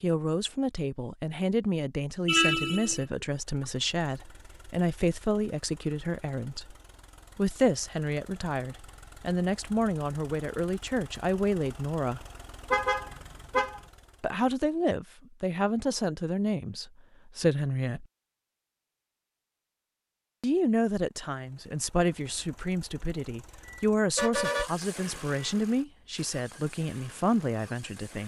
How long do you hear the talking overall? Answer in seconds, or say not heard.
23 s.